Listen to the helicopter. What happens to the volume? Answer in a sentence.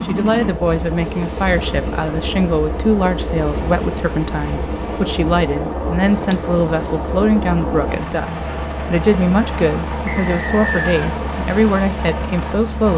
The volume of the helicopter stays about the same.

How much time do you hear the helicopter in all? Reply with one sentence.
The helicopter can be heard for 13 seconds in total.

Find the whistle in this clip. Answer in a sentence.
The whistle can be heard from 10.1 to 11.1 s.